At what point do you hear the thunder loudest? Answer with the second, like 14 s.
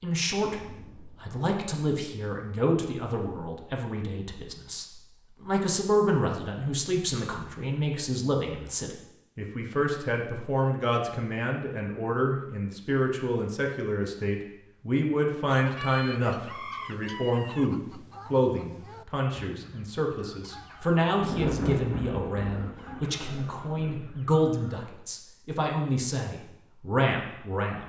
22 s.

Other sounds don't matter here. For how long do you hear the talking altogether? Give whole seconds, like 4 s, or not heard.
28 s.